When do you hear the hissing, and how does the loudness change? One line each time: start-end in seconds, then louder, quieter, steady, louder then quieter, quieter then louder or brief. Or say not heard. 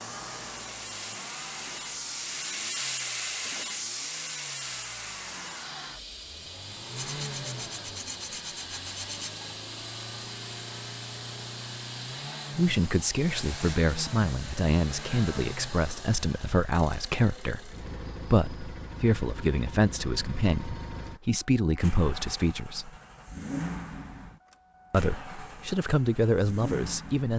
0.0-13.8 quieter.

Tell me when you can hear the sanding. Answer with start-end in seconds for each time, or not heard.
7.0-9.4.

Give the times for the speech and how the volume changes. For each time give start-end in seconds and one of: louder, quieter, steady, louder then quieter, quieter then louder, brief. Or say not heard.
12.6-22.9 steady
24.9-27.3 brief.